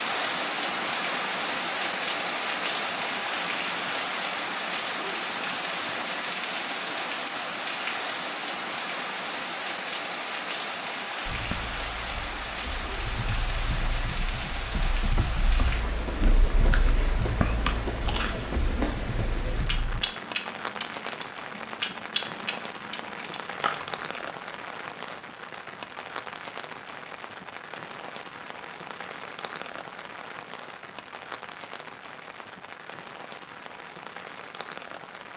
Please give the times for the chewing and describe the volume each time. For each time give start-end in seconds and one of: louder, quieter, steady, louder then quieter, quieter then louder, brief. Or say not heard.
16.6-24.2 steady.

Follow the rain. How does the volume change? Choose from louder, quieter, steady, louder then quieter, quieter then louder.
quieter.